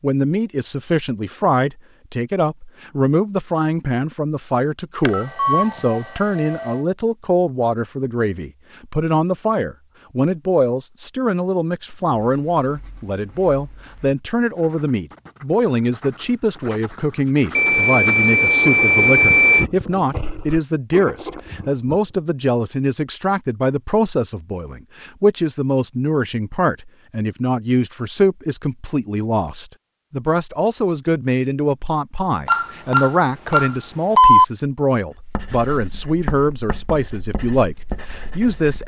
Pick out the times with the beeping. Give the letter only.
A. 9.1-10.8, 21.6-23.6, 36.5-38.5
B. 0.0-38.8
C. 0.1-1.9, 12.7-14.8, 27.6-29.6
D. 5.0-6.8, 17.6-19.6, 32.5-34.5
D.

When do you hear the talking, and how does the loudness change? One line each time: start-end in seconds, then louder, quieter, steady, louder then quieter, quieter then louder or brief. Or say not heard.
0.0-38.8 steady.